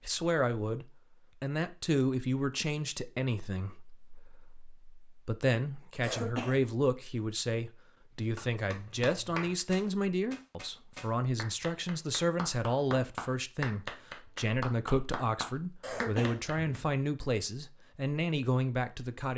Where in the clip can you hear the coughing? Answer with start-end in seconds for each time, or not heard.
6.0-6.7, 15.8-16.9.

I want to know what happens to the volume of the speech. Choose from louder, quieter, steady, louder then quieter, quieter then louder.
steady.